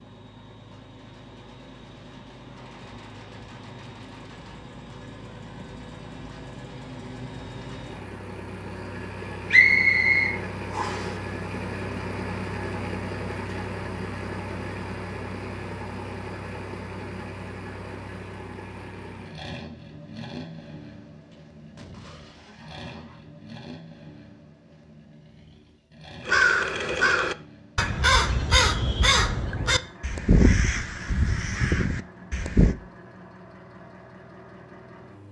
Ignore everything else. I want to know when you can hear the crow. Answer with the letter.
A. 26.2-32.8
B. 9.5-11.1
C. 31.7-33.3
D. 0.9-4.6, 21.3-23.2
A.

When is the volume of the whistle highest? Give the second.
10 s.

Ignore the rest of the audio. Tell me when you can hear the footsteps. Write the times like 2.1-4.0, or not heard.
not heard.